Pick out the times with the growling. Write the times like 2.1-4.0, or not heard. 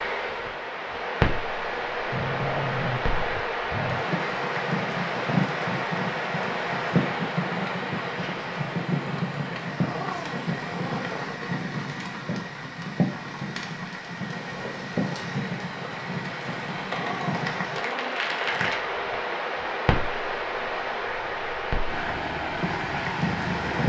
2.1-4.0, 9.8-11.6, 16.9-18.2.